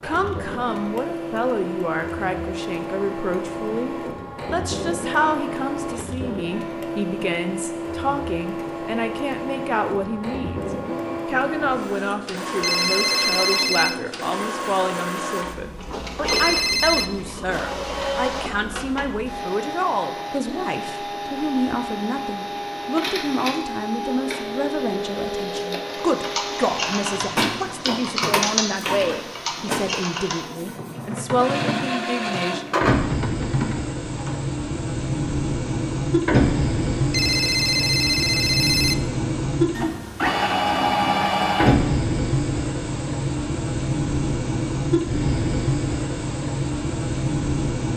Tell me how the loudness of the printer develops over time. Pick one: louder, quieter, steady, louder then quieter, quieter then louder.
louder.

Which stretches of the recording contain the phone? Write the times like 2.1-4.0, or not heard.
12.6-13.9, 16.2-17.1, 37.1-39.0.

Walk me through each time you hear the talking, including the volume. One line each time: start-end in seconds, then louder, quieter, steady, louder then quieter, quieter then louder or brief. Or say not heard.
0.0-32.6 steady.